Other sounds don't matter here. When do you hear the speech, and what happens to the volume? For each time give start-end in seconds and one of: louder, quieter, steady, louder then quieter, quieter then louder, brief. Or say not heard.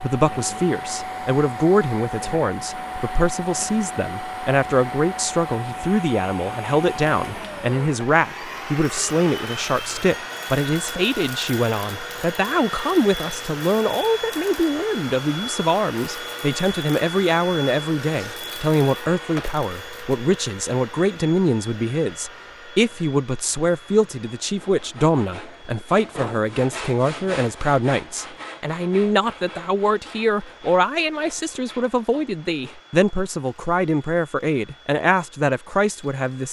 0.0-36.4 steady.